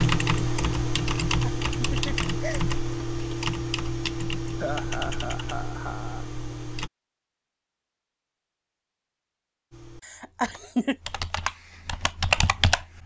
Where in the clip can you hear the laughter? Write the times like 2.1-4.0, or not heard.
1.2-2.6, 4.6-6.2, 10.0-10.9.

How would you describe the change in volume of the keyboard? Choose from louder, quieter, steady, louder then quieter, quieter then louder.
quieter then louder.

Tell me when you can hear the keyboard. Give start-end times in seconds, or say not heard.
0.0-6.9, 9.7-13.0.